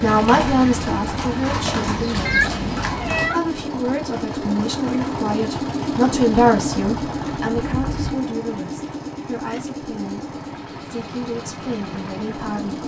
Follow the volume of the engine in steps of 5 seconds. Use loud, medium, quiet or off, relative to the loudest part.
loud, loud, medium.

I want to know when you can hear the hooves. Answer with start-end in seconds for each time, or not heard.
0.0-3.3, 6.5-8.2.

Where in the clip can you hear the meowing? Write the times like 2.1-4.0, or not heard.
2.2-3.4.